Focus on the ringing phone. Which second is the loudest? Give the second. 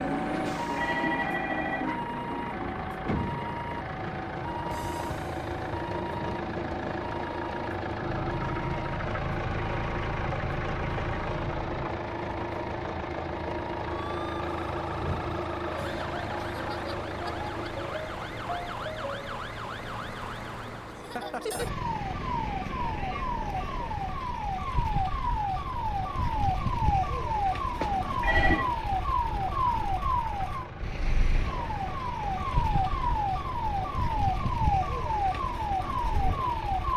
28 s.